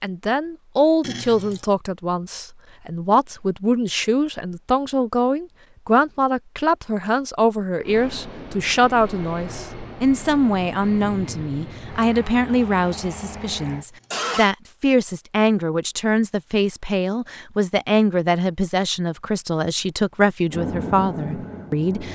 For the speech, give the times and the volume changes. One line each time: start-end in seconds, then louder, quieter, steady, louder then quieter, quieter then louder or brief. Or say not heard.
0.0-22.1 steady.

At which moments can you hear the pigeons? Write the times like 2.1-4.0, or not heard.
not heard.